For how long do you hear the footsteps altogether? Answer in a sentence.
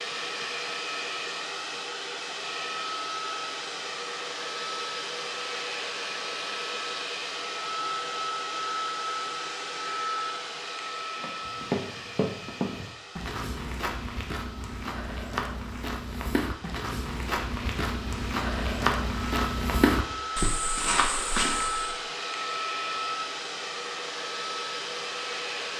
The footsteps can be heard for 11 seconds in total.